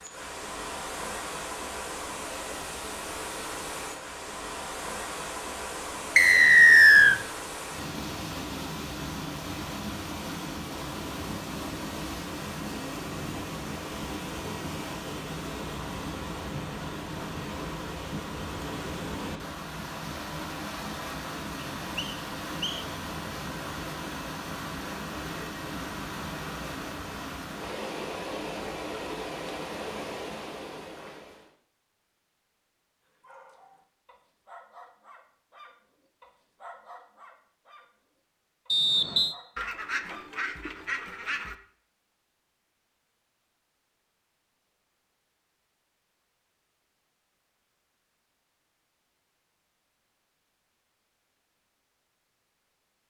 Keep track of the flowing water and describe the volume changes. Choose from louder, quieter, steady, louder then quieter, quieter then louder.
steady.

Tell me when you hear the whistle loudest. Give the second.
7 s.